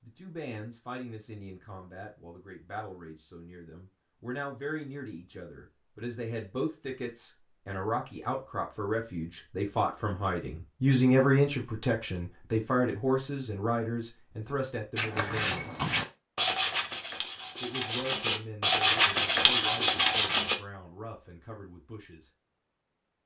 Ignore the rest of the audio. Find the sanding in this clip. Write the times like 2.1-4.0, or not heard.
14.9-20.6.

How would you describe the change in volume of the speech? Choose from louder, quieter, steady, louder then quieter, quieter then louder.
louder then quieter.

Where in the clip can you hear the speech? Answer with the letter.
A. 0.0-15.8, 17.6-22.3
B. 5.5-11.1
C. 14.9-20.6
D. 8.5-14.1
A.